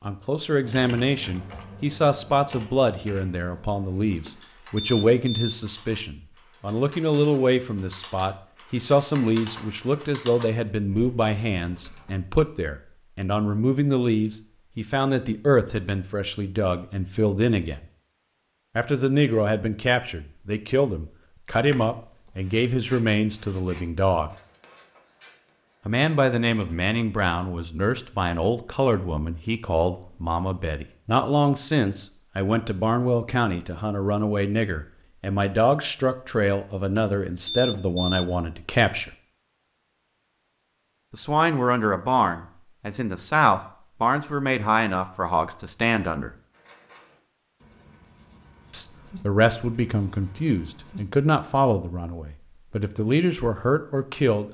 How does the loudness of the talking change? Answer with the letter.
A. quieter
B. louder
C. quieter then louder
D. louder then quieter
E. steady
E.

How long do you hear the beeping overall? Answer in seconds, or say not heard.
3 s.